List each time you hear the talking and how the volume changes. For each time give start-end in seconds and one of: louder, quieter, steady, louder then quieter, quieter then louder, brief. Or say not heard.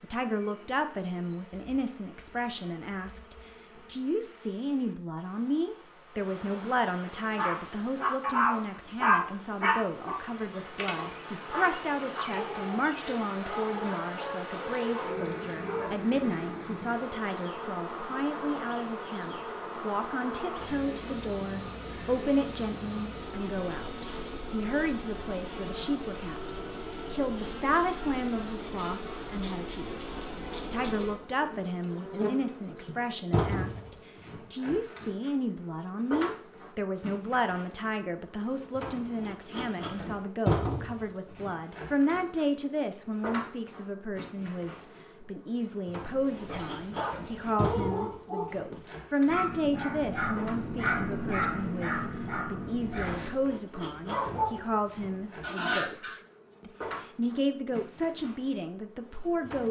0.0-59.6 steady.